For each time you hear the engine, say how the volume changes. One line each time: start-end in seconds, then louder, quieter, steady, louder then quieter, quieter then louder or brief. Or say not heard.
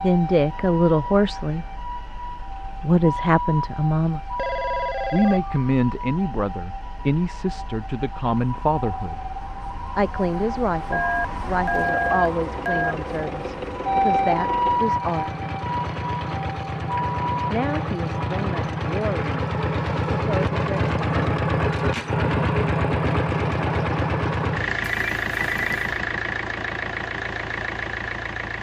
0.0-28.5 louder.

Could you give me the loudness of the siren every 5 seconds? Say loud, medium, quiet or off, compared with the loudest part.
medium, medium, loud, loud, off, off.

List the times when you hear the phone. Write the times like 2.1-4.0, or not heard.
4.3-5.7, 10.9-12.9, 24.8-25.9.